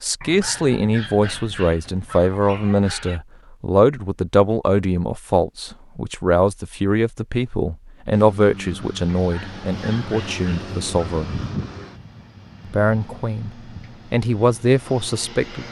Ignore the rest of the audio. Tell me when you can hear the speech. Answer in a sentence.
The speech can be heard from 0.0 to 11.4 s and from 12.7 to 15.6 s.